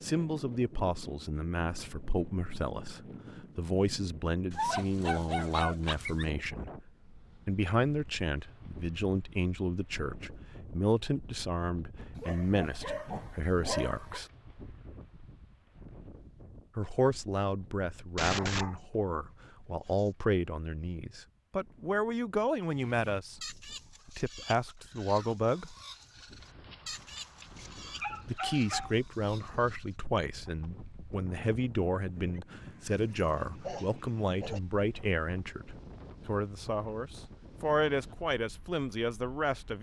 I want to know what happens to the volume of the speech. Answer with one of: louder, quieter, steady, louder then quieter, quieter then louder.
steady.